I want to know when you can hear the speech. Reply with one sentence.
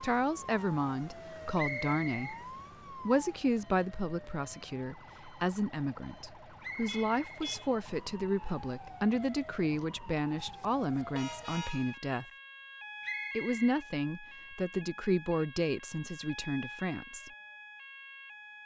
The speech can be heard from 0.0 to 2.4 s, from 3.0 to 12.2 s and from 13.3 to 17.3 s.